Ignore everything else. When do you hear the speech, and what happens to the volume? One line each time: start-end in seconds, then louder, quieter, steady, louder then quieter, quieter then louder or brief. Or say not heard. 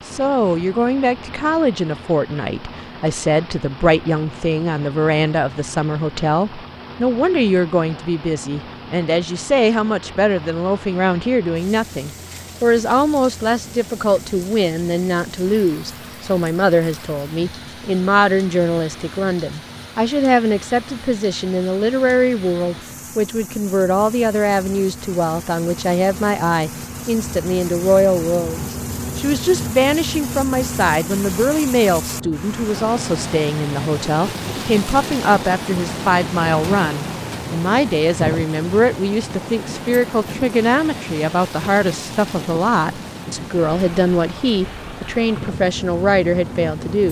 0.1-47.0 steady.